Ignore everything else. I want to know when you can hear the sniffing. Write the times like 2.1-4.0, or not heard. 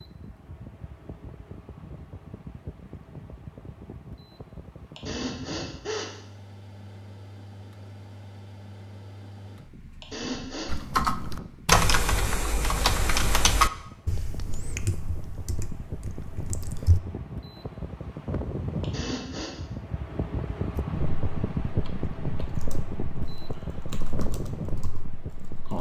5.0-6.1, 10.0-10.8, 18.8-19.6.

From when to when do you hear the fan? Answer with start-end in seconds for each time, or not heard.
0.0-25.7.